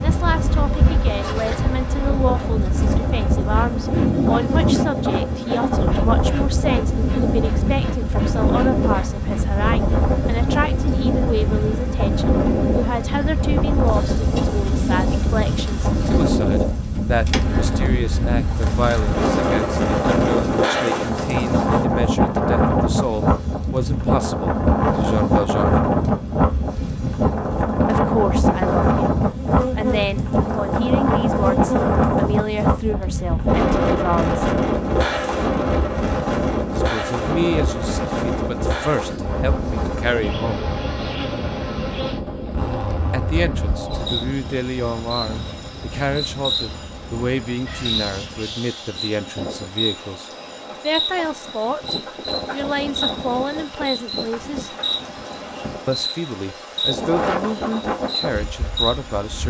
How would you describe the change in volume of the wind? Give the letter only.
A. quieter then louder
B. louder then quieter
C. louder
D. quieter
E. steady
D.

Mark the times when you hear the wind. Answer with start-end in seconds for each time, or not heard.
0.0-59.4.